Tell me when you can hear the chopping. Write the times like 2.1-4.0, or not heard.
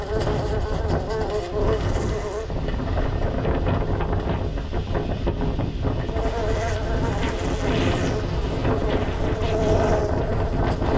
not heard.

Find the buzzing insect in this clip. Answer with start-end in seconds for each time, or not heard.
0.0-2.5, 6.0-10.9.